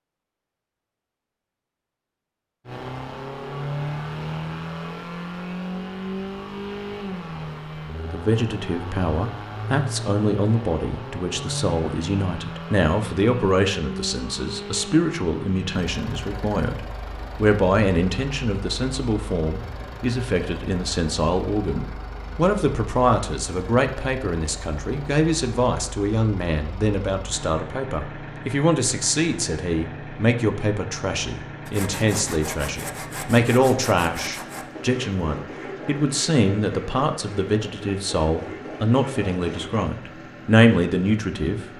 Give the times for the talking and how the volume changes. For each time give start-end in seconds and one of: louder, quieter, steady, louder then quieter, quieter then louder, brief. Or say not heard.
8.1-41.6 steady.